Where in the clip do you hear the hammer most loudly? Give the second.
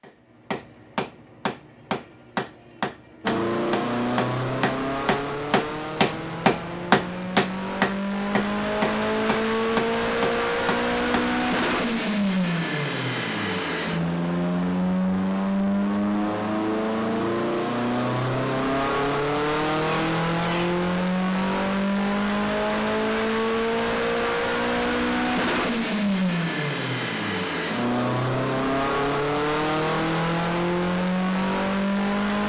7 s.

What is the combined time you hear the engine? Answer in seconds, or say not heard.
29 s.